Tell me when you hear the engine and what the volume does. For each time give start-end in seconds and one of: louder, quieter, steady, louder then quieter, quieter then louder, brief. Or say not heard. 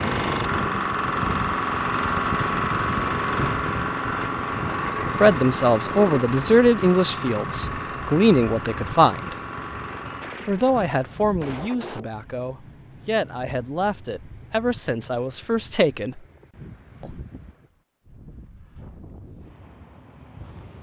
0.0-10.4 quieter.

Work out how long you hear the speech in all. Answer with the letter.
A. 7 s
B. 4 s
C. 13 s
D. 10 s
D.